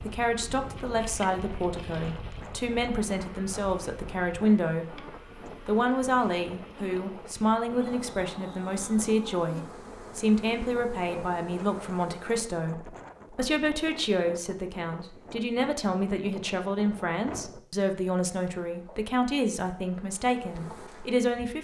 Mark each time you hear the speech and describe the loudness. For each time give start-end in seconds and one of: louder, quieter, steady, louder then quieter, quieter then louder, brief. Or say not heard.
0.0-21.5 steady.